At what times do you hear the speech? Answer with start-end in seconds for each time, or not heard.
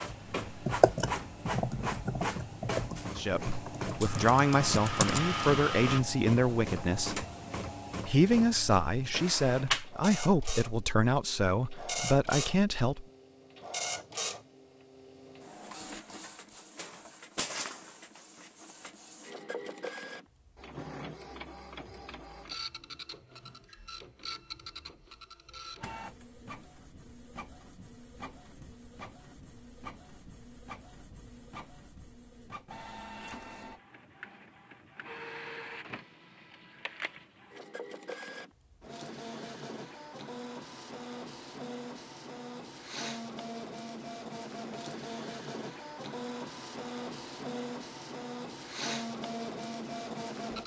3.1-7.2, 8.1-13.1.